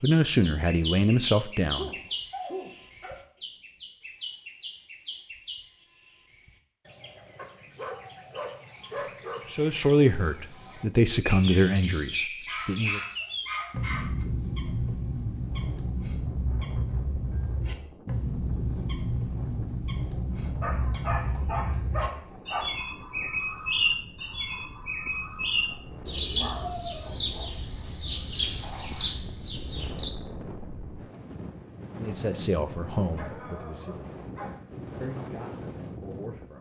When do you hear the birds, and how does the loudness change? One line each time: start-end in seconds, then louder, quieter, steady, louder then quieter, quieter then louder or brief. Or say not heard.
0.0-30.1 louder.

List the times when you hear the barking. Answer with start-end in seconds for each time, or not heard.
1.7-3.2, 7.3-9.4, 12.4-14.2, 20.6-22.6, 25.7-27.5, 33.1-34.6.